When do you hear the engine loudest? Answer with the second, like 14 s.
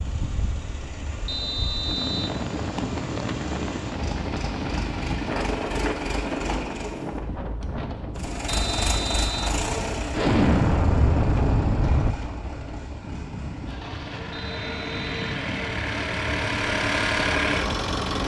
17 s.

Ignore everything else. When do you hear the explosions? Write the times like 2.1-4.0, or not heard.
10.1-12.2.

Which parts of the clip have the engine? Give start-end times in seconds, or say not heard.
0.0-7.2, 8.2-18.2.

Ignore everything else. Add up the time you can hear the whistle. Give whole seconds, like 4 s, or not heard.
3 s.